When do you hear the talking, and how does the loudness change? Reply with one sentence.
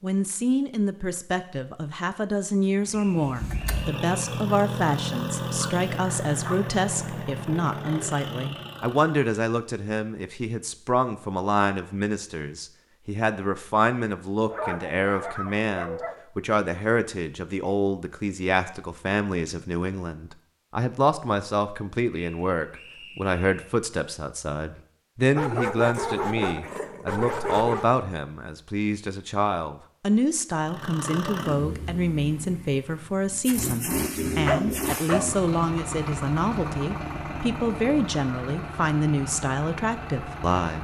The talking can be heard from 0.0 to 40.7 s, at a steady volume.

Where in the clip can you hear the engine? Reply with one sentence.
You can hear the engine from 2.8 to 9.2 s and from 30.6 to 40.7 s.